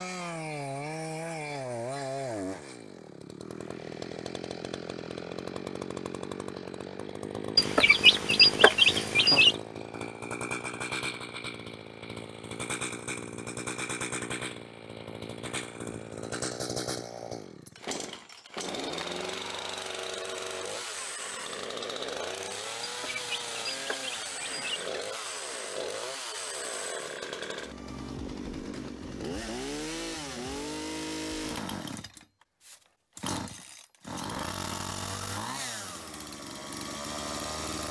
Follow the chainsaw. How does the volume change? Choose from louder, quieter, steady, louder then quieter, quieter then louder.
steady.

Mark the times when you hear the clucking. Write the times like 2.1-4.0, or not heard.
7.5-9.6, 22.8-24.9.